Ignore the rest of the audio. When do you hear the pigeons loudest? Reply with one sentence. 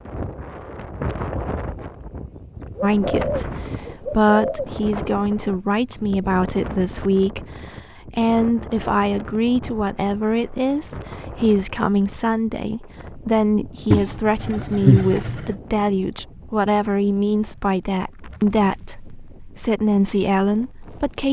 The loudest moment of the pigeons is at 15 seconds.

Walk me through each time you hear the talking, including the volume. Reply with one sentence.
The talking can be heard from 2.8 to 21.2 s, at a steady volume.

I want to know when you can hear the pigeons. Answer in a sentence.
You can hear the pigeons from 2.8 to 4.7 s and from 13.9 to 15.6 s.